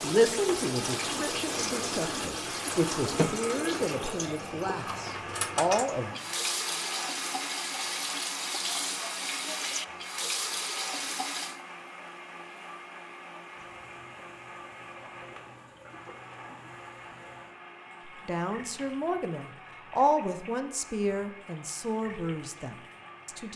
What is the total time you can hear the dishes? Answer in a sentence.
The dishes can't be heard in this clip.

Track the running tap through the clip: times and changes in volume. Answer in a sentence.
You can hear the running tap from 0.0 to 23.5 s, getting quieter.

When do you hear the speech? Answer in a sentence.
You can hear the speech from 0.0 to 6.2 s and from 18.2 to 23.5 s.